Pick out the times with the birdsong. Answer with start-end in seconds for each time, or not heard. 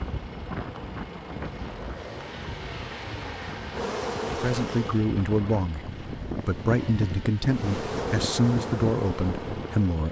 not heard.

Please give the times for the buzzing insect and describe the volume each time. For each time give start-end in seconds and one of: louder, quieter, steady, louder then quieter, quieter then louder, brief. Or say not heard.
0.0-5.1 louder
7.5-10.0 brief.